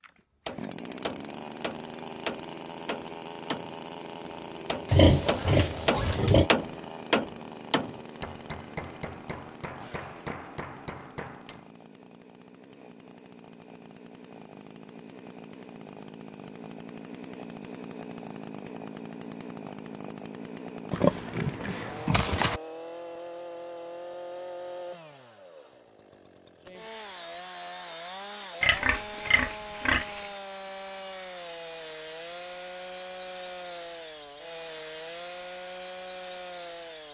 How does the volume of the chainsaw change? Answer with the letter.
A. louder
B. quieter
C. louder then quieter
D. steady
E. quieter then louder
E.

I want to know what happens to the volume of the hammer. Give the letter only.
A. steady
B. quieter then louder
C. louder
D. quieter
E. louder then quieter
E.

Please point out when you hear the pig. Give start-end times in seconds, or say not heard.
4.8-6.5, 20.9-22.6, 28.6-30.2.